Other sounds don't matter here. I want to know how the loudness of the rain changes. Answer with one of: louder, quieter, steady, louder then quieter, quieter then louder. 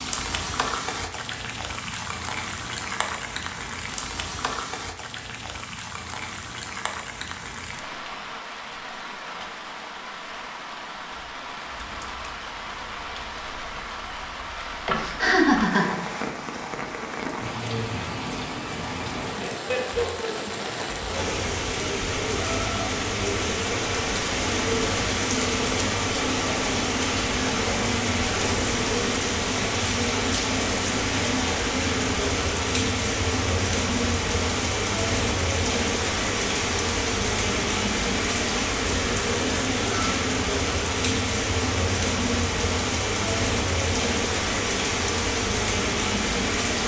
louder.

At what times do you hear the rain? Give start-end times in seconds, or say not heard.
0.0-46.8.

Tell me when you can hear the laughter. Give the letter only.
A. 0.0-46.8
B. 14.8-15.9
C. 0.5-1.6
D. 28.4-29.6
B.